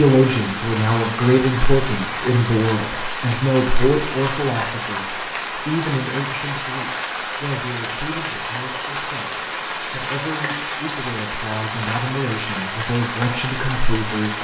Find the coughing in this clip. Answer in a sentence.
You can't hear the coughing here.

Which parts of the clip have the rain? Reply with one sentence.
The rain can be heard from 0.0 to 14.3 s.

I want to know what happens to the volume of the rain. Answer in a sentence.
The volume of the rain stays about the same.